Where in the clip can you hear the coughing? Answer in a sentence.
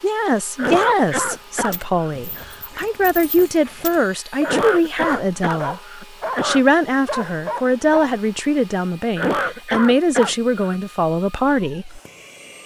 You can hear the coughing from 0.6 to 2.1 s, from 4.4 to 6.6 s and from 9.2 to 10.8 s.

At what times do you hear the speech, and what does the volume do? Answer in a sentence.
You can hear the speech from 0.0 to 12.0 s, at a steady volume.